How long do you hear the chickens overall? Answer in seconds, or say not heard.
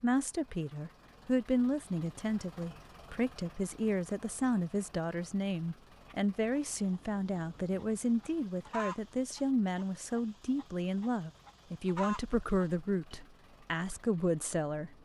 7 s.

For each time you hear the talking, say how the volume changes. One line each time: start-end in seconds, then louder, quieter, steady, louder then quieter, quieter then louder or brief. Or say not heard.
0.0-14.9 steady.